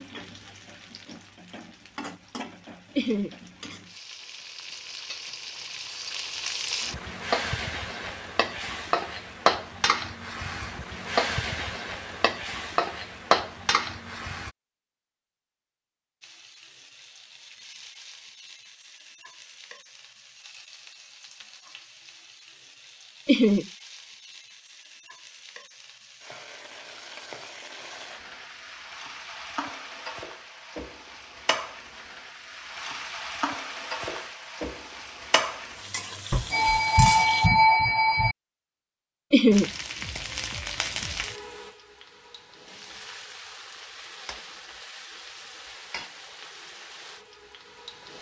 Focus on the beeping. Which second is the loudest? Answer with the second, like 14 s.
38 s.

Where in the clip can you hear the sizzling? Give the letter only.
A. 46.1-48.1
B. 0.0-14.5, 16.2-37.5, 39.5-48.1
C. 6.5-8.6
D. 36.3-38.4
B.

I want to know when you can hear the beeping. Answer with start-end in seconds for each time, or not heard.
36.3-38.4.